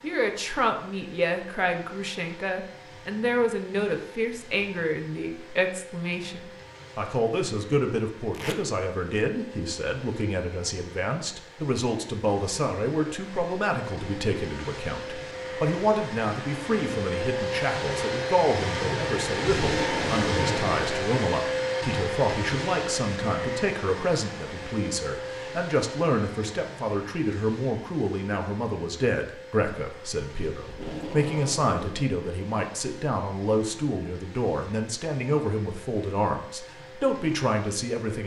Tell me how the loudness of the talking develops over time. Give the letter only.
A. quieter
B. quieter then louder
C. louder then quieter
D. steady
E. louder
D.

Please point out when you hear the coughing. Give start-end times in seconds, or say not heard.
not heard.